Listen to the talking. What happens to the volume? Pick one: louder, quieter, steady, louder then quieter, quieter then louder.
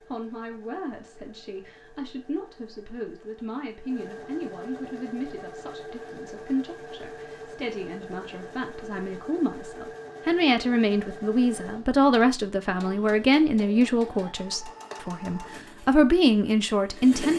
louder.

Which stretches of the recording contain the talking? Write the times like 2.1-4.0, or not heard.
0.1-17.3.